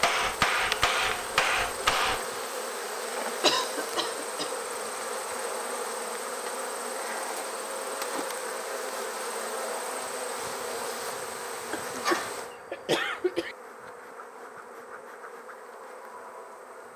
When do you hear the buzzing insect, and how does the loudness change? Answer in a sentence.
You can hear the buzzing insect from 0.0 to 16.9 s, getting quieter.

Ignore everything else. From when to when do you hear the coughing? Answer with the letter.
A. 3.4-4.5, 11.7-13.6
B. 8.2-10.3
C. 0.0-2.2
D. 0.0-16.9
A.